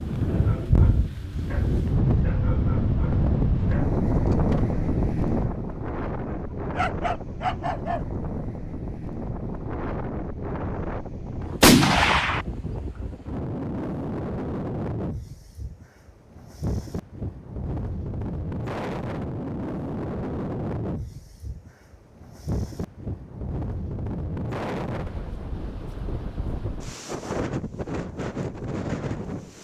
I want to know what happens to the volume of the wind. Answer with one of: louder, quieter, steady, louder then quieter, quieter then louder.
quieter.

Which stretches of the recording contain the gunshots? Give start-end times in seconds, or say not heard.
11.6-12.4.